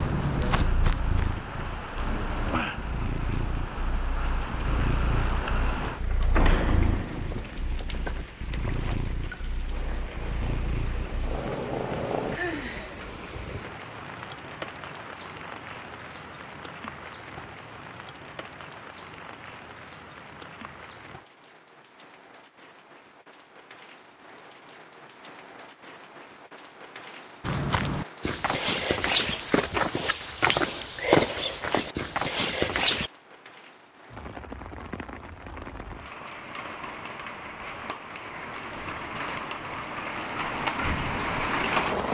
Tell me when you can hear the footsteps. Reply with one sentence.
The footsteps can be heard from 0.0 to 1.4 s and from 27.4 to 33.1 s.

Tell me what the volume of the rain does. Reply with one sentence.
The loudness of the rain goes down, then up.